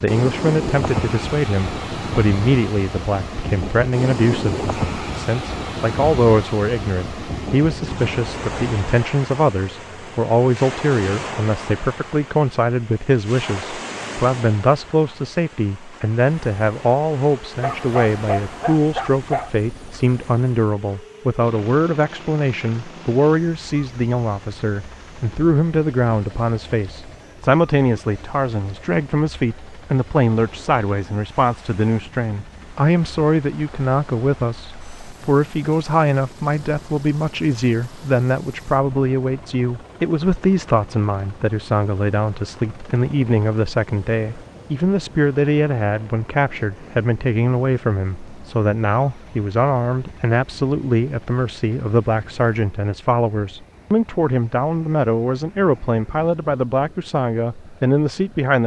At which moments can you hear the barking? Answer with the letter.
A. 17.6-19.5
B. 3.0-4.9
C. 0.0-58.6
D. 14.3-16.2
A.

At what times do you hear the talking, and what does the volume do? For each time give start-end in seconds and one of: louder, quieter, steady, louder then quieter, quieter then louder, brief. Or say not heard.
0.0-58.6 steady.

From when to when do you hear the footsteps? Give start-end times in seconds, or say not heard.
not heard.